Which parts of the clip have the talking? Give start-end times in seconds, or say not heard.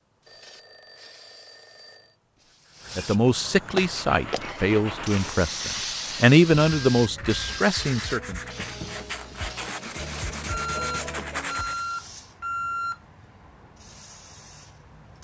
3.0-8.4.